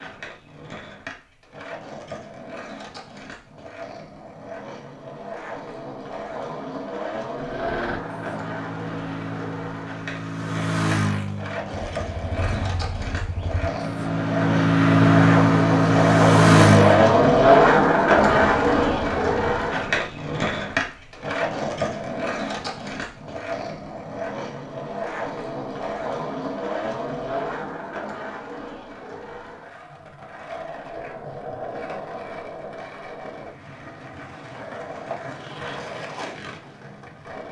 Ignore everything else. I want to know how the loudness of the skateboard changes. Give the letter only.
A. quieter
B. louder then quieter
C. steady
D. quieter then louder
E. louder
B.